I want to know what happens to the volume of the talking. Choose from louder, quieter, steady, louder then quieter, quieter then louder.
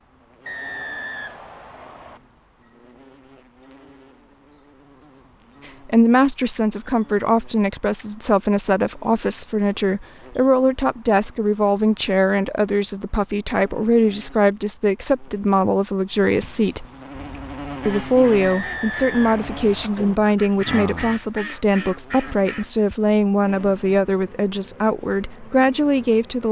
steady.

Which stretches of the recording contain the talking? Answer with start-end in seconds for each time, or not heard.
5.8-16.9, 17.9-26.4.